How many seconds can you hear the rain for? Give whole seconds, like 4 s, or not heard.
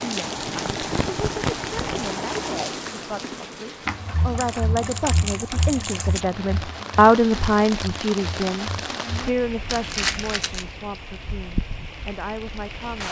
13 s.